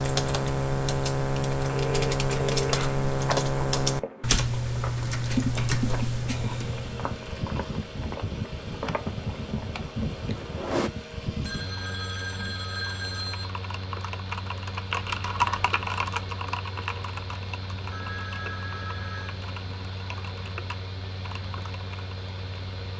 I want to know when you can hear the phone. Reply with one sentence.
You can hear the phone from 1.6 to 3.0 s, from 11.4 to 13.4 s and from 17.9 to 19.4 s.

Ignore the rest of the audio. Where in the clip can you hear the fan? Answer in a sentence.
The fan can be heard from 6.2 to 22.9 s.